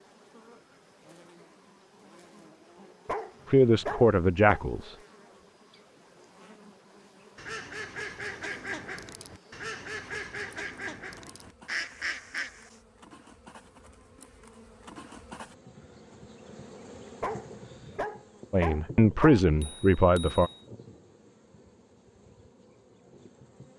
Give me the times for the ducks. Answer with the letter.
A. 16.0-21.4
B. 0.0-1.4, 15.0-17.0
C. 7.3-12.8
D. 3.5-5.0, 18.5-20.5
C.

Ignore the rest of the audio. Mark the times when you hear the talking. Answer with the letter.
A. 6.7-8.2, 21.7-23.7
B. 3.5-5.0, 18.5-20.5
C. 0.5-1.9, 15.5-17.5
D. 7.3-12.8
B.